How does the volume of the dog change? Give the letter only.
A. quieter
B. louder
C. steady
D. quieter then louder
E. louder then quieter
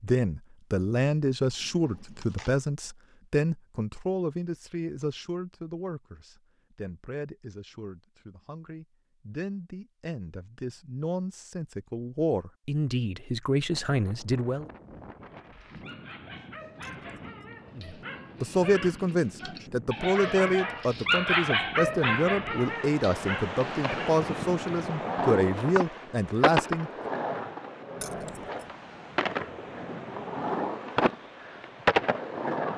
E.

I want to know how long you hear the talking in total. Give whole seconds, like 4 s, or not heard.
24 s.